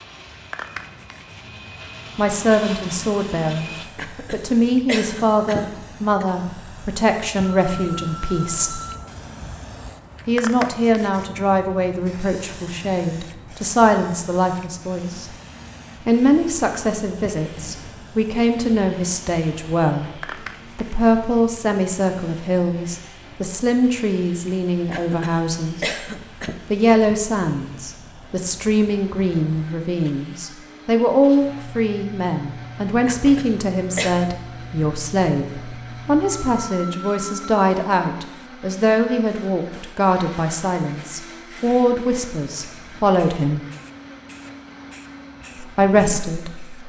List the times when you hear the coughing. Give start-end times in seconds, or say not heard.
4.0-6.2, 24.9-26.6, 33.0-34.3.